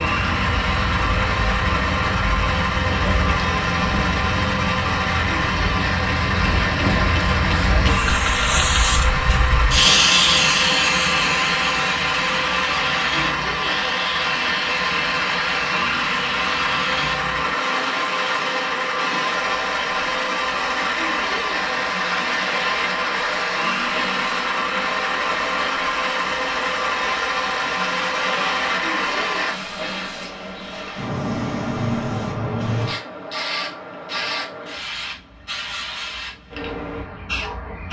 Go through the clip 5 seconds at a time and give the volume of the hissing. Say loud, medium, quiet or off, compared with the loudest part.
medium, loud, loud, medium, medium, medium, medium, medium.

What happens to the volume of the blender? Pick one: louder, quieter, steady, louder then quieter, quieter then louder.
steady.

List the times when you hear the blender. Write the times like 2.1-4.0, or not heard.
0.0-29.6.